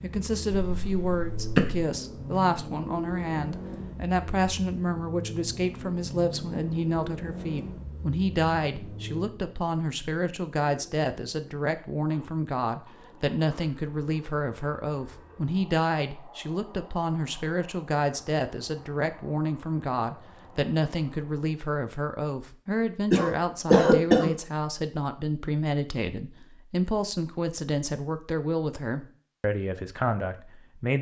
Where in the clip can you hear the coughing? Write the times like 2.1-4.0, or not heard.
0.5-1.9, 23.1-24.3.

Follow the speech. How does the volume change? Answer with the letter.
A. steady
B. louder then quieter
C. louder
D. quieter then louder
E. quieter
A.